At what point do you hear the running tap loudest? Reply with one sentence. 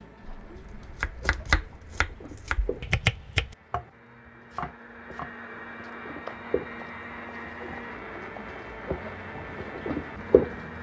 The loudest moment of the running tap is at 10 seconds.